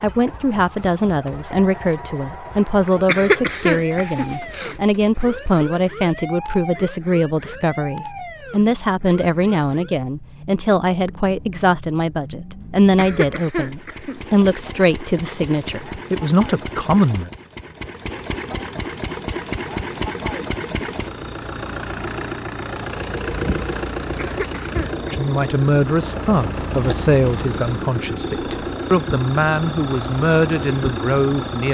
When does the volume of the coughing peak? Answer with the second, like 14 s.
3 s.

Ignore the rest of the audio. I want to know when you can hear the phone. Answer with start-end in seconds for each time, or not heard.
not heard.